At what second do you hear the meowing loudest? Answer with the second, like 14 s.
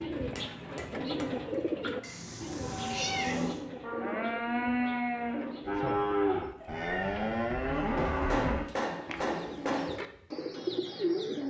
3 s.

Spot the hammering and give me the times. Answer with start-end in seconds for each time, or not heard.
0.3-1.3, 8.0-10.0.